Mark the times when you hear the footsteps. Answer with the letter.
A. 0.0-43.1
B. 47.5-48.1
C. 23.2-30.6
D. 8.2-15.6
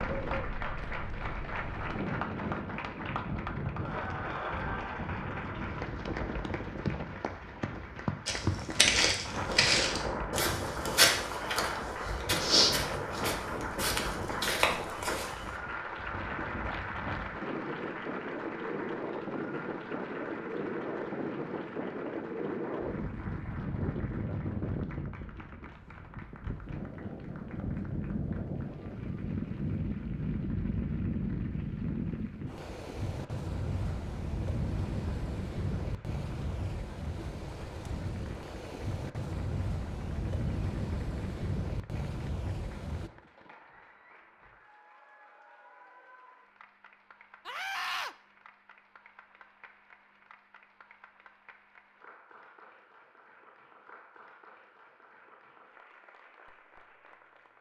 D.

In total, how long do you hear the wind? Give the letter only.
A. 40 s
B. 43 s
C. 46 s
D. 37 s
B.